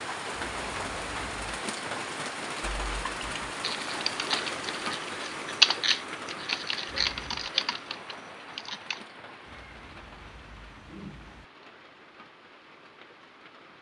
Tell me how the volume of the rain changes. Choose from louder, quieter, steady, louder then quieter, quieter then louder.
quieter.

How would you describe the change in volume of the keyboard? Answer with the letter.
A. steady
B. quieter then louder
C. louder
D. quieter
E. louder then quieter
E.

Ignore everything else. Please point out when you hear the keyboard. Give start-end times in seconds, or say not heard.
2.6-9.0.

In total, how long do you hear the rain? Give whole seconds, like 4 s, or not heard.
14 s.